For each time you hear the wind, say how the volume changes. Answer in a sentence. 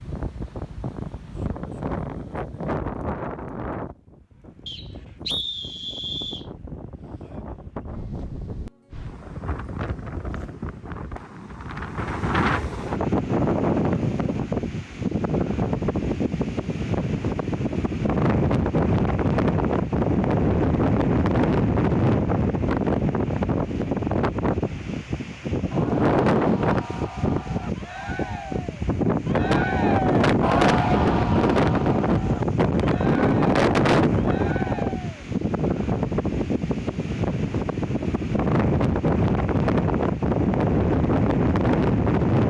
The wind can be heard from 0.0 to 42.4 s, getting louder.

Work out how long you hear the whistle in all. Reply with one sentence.
You can hear the whistle for 2 seconds altogether.